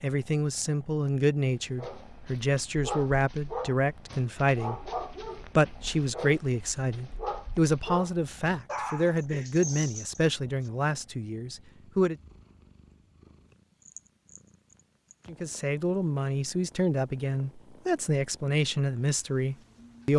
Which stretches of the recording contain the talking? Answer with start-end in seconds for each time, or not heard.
0.0-4.9, 5.5-12.2, 15.2-20.1.